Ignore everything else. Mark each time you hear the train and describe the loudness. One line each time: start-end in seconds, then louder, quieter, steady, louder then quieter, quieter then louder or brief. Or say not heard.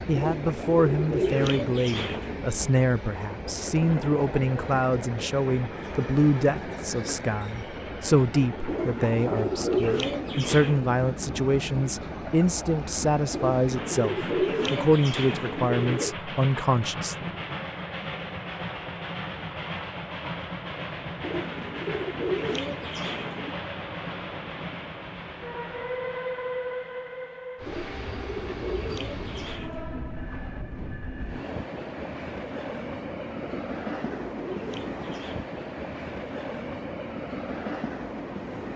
0.0-38.7 steady.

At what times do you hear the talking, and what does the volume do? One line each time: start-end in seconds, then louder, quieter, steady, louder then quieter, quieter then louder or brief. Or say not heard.
0.1-17.4 steady.